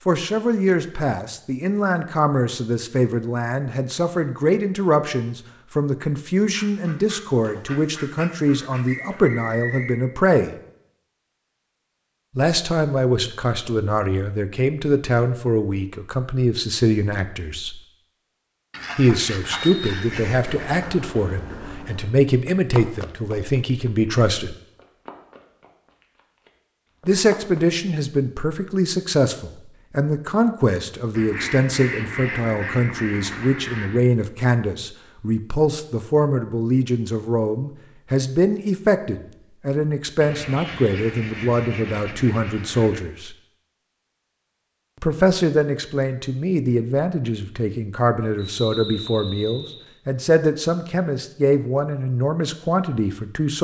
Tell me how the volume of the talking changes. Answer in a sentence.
The loudness of the talking stays about the same.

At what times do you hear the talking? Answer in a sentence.
The talking can be heard from 0.1 to 10.6 s, from 12.3 to 17.8 s, from 18.9 to 24.6 s, from 27.1 to 43.4 s and from 45.0 to 53.5 s.